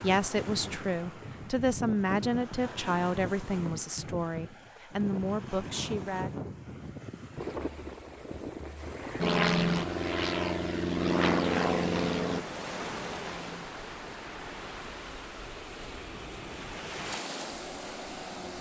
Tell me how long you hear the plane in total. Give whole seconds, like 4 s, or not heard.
9 s.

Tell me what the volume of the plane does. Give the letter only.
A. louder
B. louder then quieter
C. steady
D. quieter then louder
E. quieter
E.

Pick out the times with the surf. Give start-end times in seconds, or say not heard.
0.0-18.5.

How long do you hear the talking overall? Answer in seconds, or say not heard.
6 s.